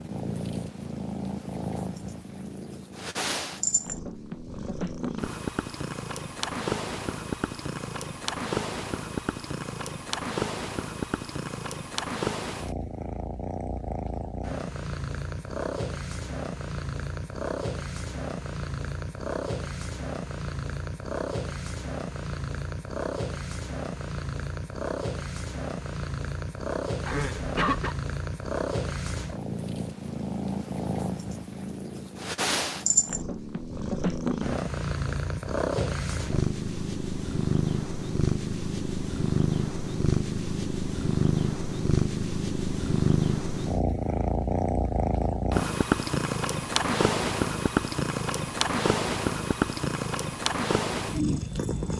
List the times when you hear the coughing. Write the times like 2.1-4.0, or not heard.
27.1-27.9.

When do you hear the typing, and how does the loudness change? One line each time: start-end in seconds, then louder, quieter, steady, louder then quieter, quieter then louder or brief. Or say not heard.
not heard.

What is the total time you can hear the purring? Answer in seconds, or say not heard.
52 s.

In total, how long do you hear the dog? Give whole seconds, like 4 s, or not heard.
not heard.